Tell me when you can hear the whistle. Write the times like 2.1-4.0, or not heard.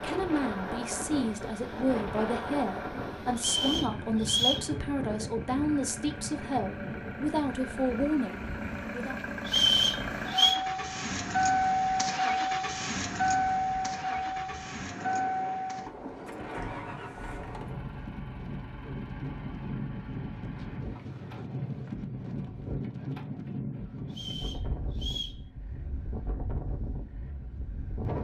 3.4-4.7, 9.4-10.6, 24.1-25.4.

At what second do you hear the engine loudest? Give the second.
12 s.